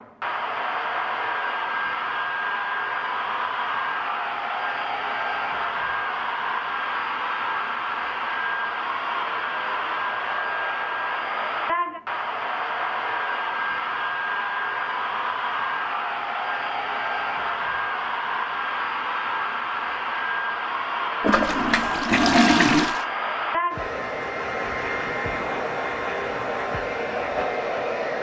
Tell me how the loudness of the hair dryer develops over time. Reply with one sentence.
The volume of the hair dryer stays about the same.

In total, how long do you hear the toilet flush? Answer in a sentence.
The toilet flush can be heard for 2 seconds in total.